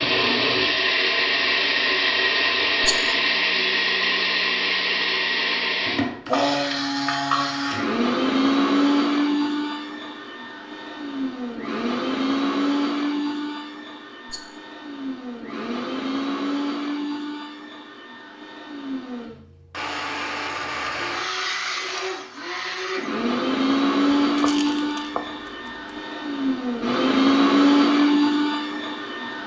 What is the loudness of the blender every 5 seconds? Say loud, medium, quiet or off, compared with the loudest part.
loud, loud, medium, medium, loud, loud.